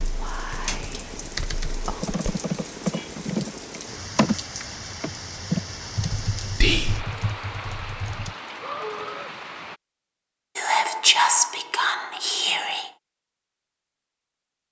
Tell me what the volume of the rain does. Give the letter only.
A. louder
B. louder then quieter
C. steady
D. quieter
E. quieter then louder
C.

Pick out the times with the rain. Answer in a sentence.
You can hear the rain from 0.0 to 9.8 s.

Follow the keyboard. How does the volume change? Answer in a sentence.
The loudness of the keyboard goes up, then down.